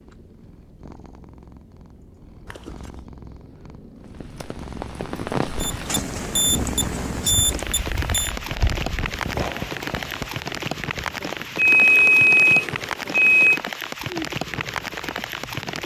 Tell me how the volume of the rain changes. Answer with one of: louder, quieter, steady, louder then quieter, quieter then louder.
steady.